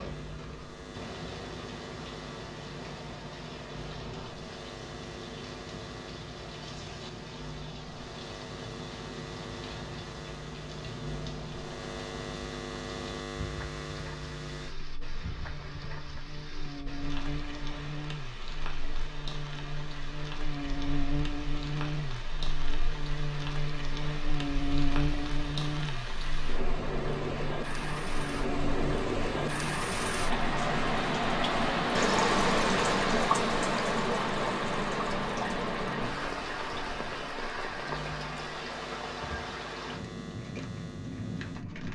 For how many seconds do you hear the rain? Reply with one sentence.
The rain can be heard for 42 seconds in total.